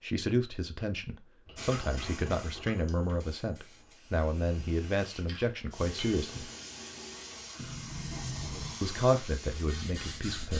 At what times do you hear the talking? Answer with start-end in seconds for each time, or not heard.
0.0-6.5, 8.8-10.5.